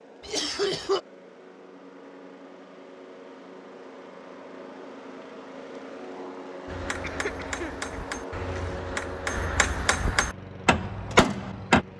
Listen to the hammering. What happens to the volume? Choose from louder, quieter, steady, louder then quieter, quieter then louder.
louder.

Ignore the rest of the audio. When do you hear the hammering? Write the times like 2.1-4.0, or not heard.
6.7-11.8.